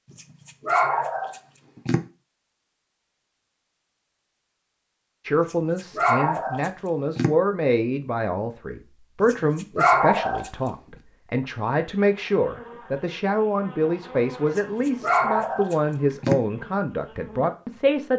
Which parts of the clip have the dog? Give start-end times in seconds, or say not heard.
0.7-2.0, 5.5-7.3, 9.2-10.5, 14.6-16.4.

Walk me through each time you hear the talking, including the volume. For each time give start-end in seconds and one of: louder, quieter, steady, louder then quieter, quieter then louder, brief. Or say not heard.
5.2-18.1 steady.